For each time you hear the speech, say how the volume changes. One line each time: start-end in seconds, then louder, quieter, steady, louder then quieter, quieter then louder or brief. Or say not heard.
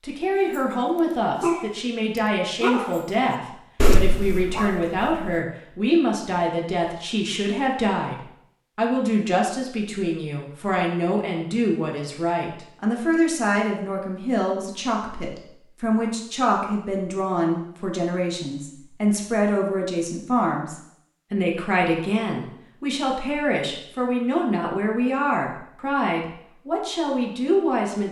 0.0-28.0 steady.